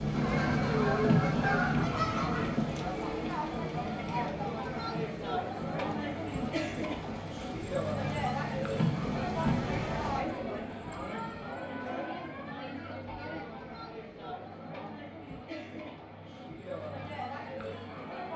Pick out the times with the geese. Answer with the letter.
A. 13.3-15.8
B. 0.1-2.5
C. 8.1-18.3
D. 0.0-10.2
B.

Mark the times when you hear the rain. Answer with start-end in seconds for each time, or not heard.
0.0-10.2.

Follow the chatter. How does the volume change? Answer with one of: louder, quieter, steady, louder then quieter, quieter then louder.
quieter.